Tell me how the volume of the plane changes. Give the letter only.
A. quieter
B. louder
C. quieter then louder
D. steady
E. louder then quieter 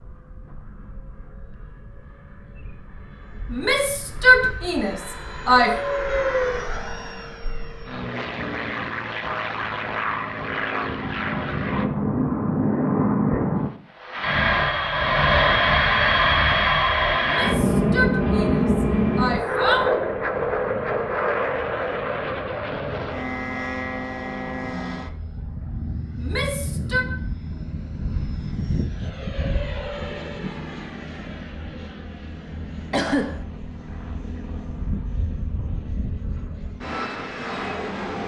E.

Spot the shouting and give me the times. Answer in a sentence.
The shouting can be heard from 3.5 to 5.7 s, from 17.2 to 19.9 s and from 26.1 to 27.1 s.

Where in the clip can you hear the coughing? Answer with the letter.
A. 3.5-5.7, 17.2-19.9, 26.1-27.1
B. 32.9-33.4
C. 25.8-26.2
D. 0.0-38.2
B.